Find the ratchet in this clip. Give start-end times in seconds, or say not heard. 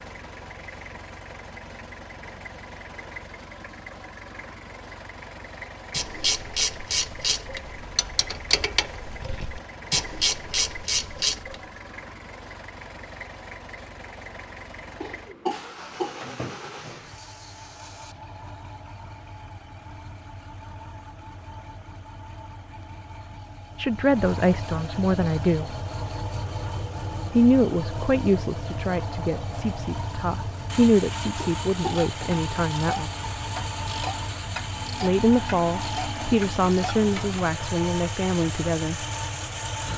5.9-11.6, 31.8-37.4.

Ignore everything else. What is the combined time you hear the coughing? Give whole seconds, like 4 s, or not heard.
3 s.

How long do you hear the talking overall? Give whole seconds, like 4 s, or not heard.
12 s.